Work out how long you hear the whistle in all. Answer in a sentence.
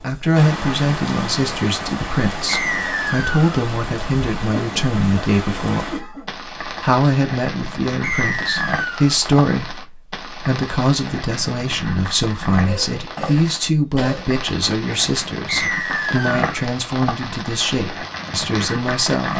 You can hear the whistle for 3 seconds altogether.